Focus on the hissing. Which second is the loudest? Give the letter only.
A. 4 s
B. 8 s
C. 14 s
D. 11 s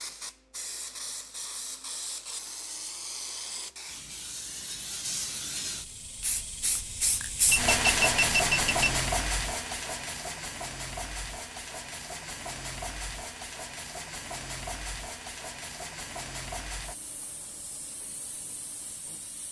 B.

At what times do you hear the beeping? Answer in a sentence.
The beeping can be heard from 7.5 to 8.9 s.